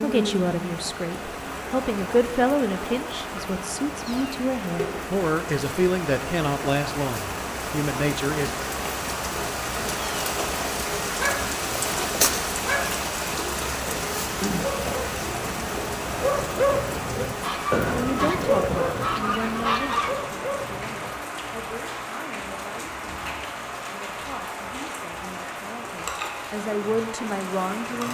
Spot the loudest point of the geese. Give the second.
20 s.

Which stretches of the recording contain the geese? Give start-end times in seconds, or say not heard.
17.4-20.1.